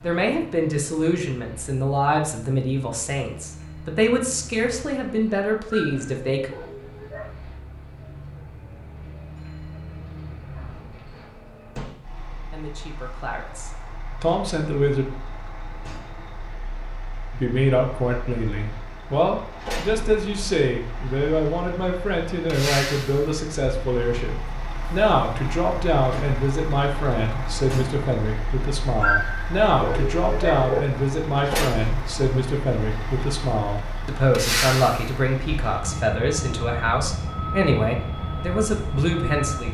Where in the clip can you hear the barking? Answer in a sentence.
The barking can be heard from 5.7 to 7.3 s and from 29.0 to 30.8 s.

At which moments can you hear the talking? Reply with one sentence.
The talking can be heard from 0.0 to 6.5 s, from 12.5 to 15.1 s and from 17.3 to 39.6 s.